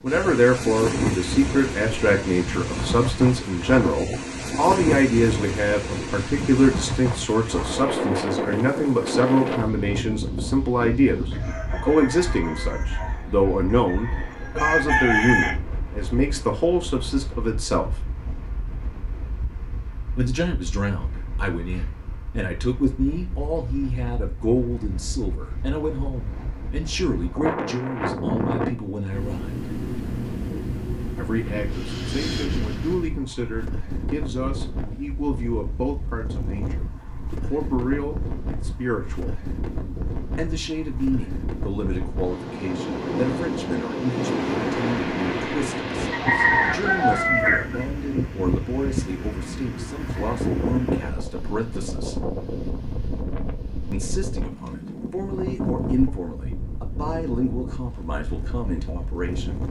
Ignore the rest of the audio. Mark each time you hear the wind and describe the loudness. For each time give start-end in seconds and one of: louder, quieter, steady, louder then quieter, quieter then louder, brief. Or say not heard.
0.0-59.6 quieter then louder.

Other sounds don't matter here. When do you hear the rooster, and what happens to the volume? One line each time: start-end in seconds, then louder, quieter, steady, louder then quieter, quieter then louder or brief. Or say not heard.
11.3-15.6 quieter then louder
46.1-47.9 brief.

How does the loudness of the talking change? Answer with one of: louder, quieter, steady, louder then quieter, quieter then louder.
quieter.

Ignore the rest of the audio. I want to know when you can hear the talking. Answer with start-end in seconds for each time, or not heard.
0.0-18.0, 20.1-29.6, 31.1-39.4, 40.4-52.1, 53.9-59.6.